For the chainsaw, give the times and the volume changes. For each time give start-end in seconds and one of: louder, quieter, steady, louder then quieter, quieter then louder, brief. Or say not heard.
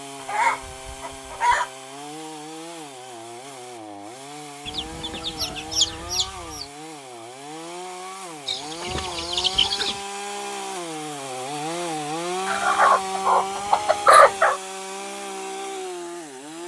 0.0-16.6 louder.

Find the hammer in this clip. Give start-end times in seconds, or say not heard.
not heard.